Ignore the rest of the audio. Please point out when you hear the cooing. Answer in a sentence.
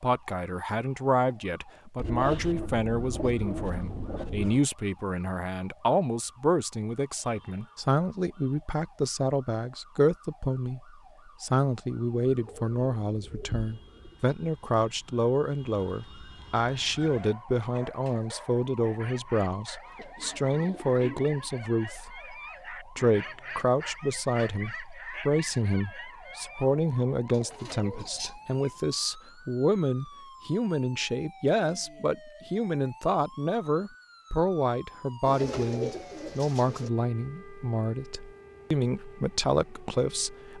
The cooing can be heard from 1.9 to 4.6 s, from 12.3 to 14.2 s, from 19.9 to 21.4 s, from 27.3 to 28.7 s and from 35.2 to 36.9 s.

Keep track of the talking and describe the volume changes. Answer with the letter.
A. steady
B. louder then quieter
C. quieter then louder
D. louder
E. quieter
A.